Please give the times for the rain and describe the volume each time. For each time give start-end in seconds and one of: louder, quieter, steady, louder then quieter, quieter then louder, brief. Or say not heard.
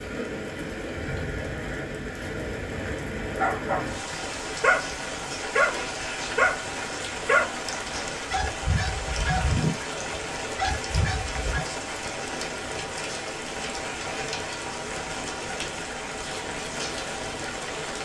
0.0-17.9 steady.